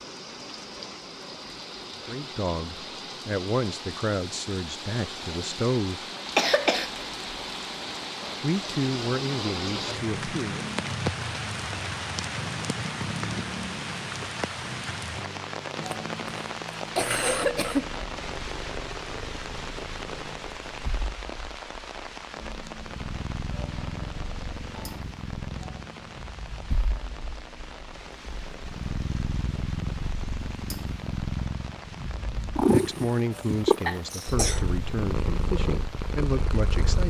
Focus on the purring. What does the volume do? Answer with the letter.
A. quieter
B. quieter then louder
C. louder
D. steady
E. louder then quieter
C.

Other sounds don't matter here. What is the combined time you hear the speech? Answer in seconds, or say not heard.
11 s.